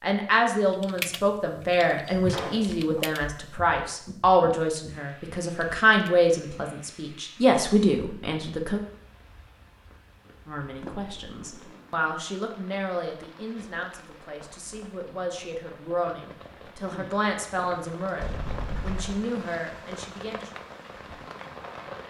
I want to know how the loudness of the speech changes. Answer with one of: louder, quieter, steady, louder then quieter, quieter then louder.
quieter.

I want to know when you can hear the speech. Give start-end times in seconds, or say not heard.
0.0-8.8, 10.4-20.5.